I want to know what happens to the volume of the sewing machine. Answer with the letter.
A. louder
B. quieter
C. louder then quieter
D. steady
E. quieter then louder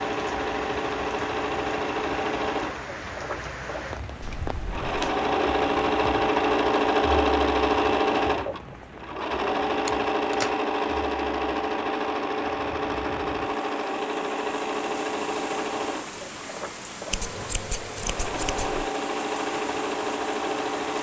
C.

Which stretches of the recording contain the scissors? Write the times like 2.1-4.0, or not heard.
4.2-5.2, 9.8-10.6, 17.1-18.9.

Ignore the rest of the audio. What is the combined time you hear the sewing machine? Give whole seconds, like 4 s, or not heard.
21 s.